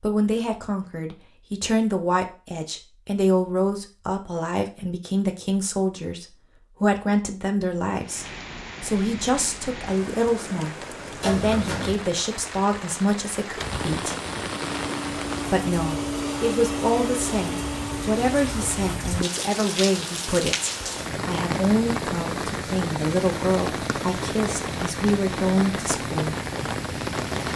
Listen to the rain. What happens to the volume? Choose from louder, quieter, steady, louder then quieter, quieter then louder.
louder.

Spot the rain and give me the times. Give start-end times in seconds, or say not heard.
8.0-27.5.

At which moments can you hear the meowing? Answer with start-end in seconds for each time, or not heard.
11.2-12.1.